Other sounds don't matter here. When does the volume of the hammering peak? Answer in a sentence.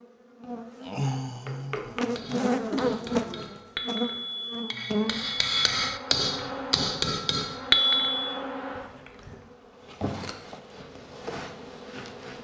The loudest moment of the hammering is at 8 seconds.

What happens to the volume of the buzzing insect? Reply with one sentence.
The loudness of the buzzing insect goes down.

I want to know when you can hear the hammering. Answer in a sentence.
You can hear the hammering from 1.4 to 8.4 s.